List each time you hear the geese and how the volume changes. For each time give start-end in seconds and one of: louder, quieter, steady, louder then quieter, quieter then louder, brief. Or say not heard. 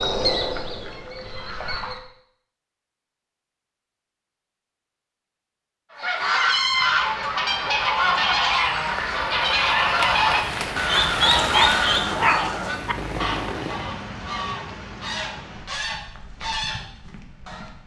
0.0-2.0 brief
6.0-17.7 quieter.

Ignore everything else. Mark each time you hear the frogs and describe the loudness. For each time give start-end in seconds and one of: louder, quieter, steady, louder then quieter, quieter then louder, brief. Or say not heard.
not heard.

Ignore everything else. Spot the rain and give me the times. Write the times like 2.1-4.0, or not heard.
6.3-17.8.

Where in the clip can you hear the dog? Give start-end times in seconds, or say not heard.
10.9-12.9.